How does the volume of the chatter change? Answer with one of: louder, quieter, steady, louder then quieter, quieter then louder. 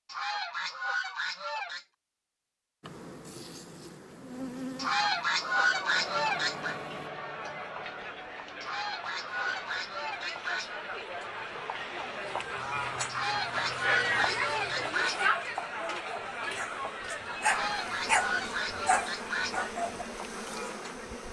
louder then quieter.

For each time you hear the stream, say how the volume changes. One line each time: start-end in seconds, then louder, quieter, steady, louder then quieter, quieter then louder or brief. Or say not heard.
not heard.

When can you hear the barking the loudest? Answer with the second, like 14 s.
18 s.